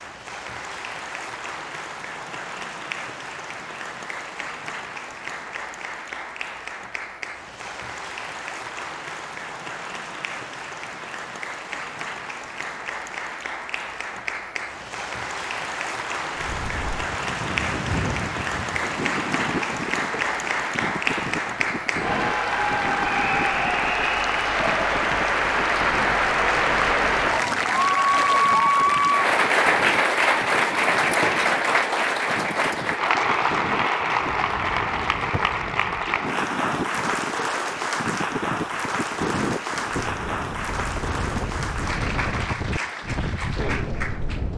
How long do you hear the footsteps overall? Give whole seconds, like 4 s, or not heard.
not heard.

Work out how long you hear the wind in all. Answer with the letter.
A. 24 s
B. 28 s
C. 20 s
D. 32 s
B.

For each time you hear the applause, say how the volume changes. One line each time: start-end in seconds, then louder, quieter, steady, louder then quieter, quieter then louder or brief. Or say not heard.
0.0-44.5 louder then quieter.